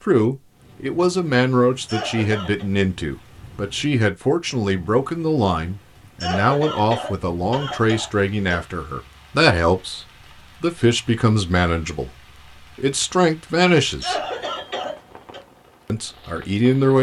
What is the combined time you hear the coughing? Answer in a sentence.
You can hear the coughing for 5 seconds altogether.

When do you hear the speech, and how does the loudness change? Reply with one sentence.
The speech can be heard from 0.1 to 14.2 s, at a steady volume; and briefly from 15.8 to 16.9 s.